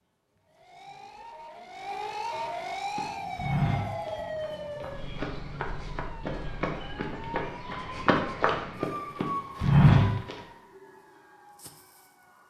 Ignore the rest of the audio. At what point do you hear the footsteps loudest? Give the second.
10 s.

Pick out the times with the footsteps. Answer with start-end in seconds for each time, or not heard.
3.0-10.3.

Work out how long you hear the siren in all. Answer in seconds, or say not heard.
12 s.